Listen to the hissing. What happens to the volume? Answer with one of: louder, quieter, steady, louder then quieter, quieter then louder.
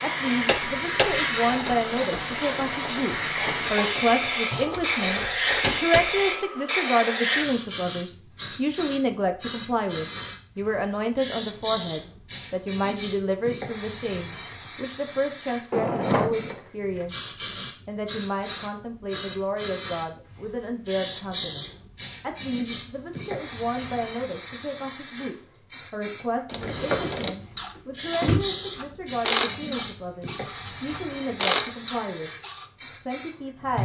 steady.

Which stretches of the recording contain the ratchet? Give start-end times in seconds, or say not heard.
0.5-6.2, 26.4-32.6.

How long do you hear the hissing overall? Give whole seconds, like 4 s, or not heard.
34 s.